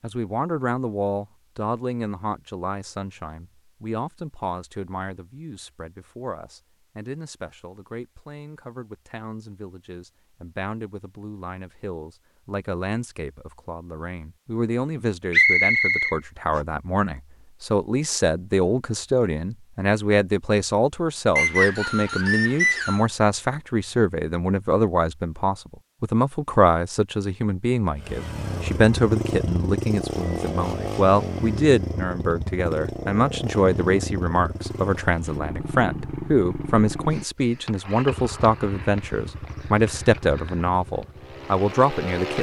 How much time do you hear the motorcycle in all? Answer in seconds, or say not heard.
14 s.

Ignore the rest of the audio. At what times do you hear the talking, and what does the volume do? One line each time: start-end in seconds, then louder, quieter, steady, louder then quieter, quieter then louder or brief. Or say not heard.
0.0-42.3 louder.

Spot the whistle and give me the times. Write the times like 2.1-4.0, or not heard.
15.3-16.6, 21.4-23.1.